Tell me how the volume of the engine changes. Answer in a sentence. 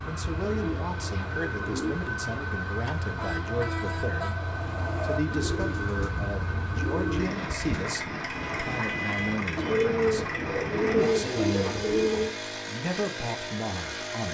The volume of the engine stays about the same.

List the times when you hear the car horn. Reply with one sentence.
The car horn can be heard from 3.1 to 5.2 s and from 8.2 to 9.4 s.